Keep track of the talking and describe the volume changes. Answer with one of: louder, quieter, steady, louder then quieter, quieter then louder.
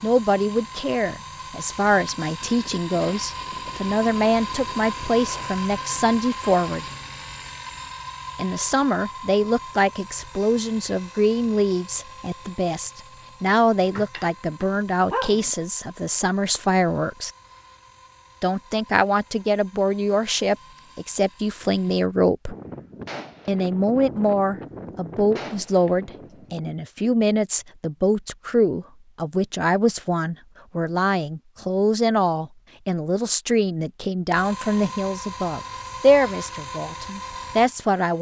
steady.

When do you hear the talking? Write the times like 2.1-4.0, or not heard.
0.0-6.8, 8.3-17.3, 18.4-22.6, 23.4-38.1.